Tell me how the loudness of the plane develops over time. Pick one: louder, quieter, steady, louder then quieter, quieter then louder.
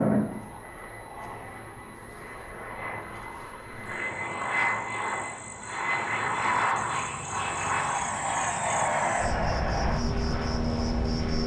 louder.